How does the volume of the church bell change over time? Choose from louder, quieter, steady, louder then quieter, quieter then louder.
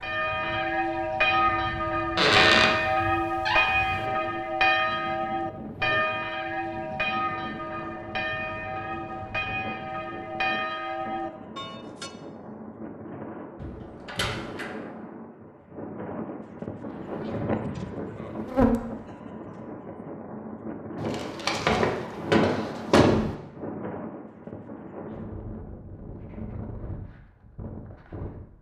quieter.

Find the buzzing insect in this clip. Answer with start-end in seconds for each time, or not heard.
17.1-18.8.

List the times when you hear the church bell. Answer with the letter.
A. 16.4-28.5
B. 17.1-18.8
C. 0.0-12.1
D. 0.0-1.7
C.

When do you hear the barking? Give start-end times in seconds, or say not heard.
not heard.